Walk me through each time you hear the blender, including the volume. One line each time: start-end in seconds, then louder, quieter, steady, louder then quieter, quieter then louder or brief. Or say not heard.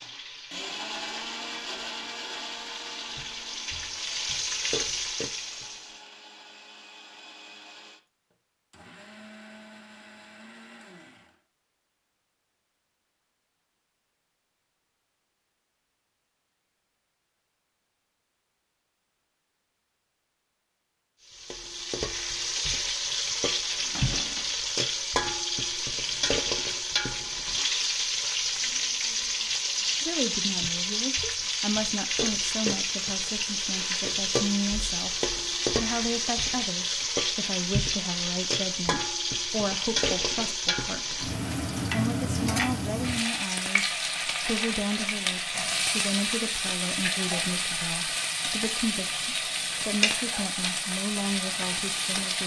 0.0-11.4 quieter.